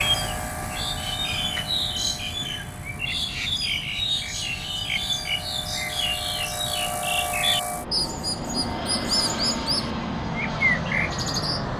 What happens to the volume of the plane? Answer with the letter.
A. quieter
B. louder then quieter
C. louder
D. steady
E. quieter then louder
E.